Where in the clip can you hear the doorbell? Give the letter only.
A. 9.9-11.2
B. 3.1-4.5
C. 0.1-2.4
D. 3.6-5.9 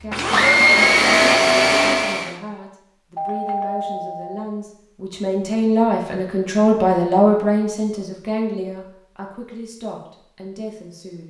B.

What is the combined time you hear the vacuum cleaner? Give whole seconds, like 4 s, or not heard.
2 s.